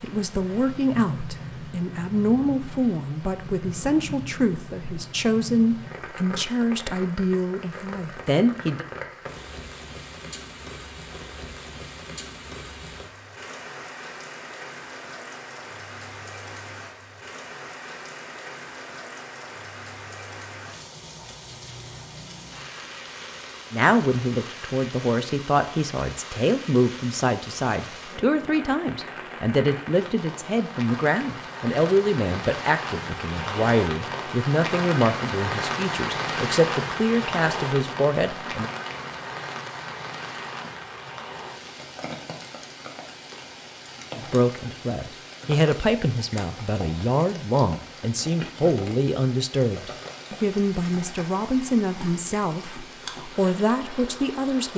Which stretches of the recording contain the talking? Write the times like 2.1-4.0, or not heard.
0.0-8.8, 23.7-38.7, 44.1-54.7.